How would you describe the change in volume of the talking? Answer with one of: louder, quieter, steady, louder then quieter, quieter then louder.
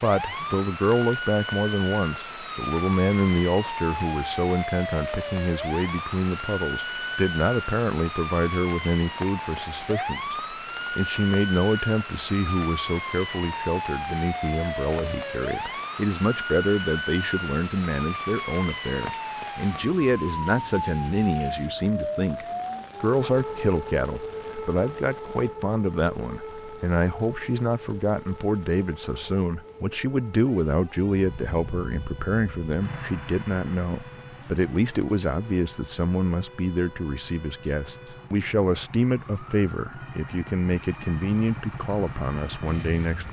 steady.